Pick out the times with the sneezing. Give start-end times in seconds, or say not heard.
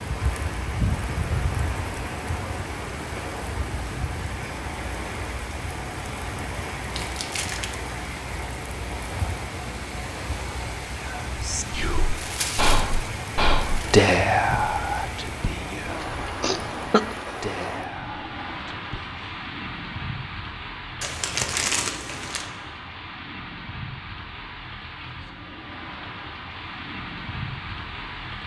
16.4-17.0.